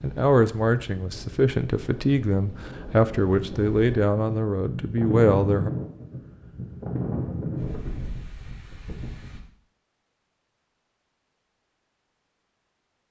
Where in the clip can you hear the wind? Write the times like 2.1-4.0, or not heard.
0.0-9.4.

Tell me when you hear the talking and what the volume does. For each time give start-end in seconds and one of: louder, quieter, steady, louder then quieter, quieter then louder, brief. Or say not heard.
0.0-5.7 steady.